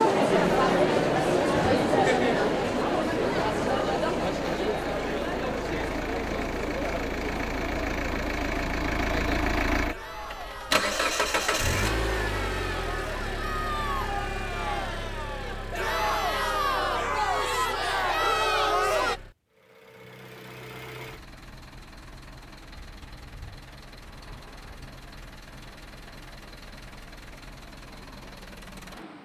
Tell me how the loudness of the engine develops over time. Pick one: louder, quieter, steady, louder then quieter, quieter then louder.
quieter.